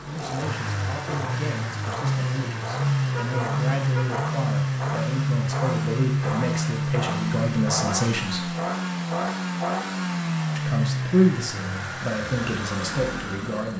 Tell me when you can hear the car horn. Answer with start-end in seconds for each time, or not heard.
3.1-4.2.